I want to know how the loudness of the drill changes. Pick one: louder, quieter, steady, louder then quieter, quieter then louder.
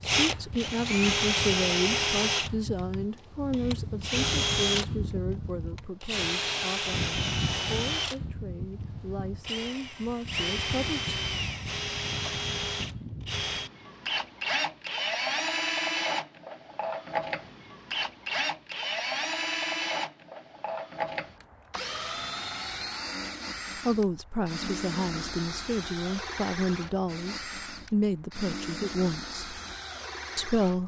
quieter.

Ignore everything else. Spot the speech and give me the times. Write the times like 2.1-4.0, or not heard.
0.1-11.2, 23.9-29.6, 30.4-30.8.